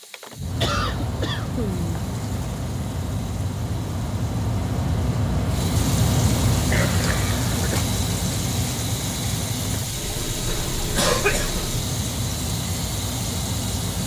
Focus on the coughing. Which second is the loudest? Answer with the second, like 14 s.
11 s.